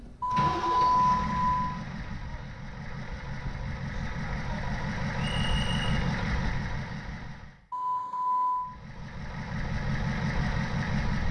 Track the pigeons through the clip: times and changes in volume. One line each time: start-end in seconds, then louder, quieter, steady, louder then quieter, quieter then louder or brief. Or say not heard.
not heard.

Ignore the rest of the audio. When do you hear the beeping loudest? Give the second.
1 s.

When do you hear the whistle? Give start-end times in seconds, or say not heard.
5.2-6.0.